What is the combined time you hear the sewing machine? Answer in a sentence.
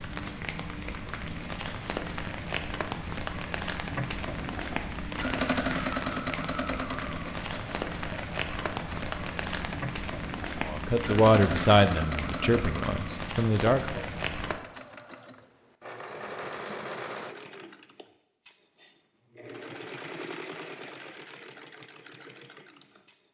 You can hear the sewing machine for 19 seconds altogether.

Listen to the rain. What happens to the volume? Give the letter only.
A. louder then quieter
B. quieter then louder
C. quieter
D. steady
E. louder
D.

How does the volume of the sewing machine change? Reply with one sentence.
The loudness of the sewing machine goes down.